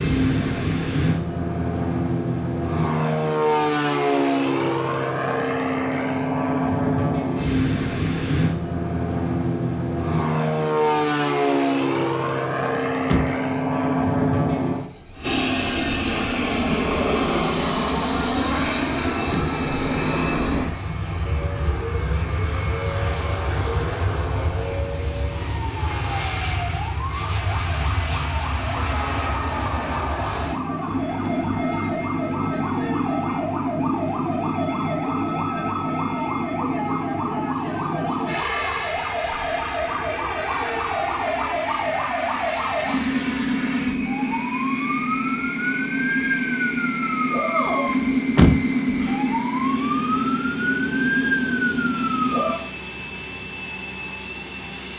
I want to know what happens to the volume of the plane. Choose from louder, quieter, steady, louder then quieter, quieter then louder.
quieter.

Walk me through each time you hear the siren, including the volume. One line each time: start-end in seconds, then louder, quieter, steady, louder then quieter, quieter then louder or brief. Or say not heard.
21.2-52.5 louder.